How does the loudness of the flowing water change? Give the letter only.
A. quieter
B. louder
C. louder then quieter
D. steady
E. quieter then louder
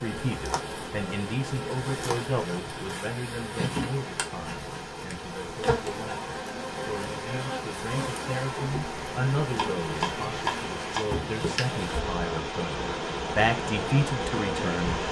B.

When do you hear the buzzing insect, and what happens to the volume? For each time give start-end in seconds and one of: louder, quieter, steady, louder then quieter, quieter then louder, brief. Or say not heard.
0.0-15.0 steady.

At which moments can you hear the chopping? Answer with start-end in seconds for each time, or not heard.
9.5-11.2.